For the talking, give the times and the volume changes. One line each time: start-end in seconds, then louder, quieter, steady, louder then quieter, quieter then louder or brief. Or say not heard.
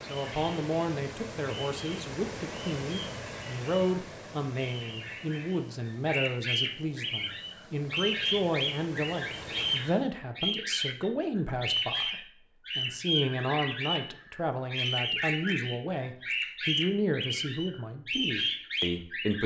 0.0-19.4 steady.